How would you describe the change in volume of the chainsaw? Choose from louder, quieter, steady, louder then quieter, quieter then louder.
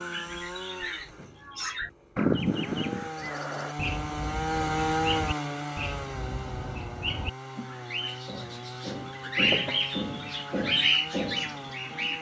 louder then quieter.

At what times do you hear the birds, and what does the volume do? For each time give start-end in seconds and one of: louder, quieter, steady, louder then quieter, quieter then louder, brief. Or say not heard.
0.0-12.1 quieter then louder.